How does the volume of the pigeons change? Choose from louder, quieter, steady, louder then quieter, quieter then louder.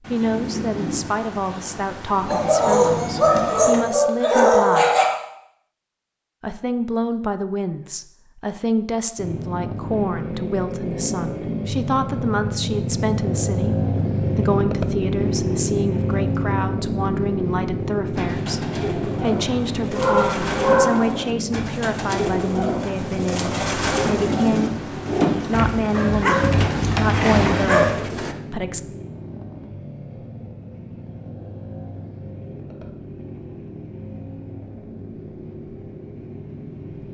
louder.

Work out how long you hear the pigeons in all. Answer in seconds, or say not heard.
10 s.